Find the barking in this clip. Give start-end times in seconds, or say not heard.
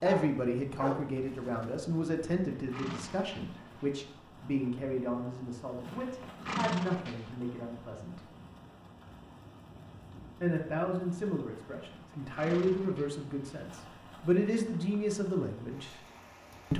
0.0-1.8.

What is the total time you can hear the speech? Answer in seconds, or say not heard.
14 s.